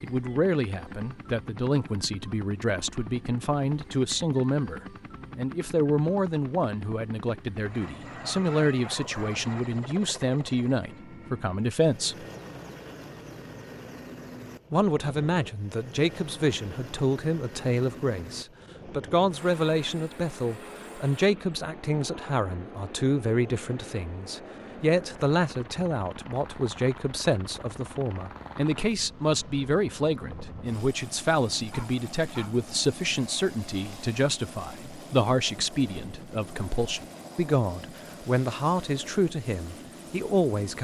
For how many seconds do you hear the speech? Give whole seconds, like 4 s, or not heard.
38 s.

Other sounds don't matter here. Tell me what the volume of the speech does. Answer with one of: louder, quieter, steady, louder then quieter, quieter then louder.
steady.